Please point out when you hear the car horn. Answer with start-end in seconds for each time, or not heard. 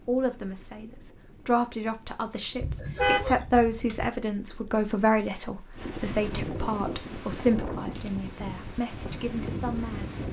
2.6-4.1.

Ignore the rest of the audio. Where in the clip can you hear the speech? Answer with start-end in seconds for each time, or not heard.
0.0-10.1.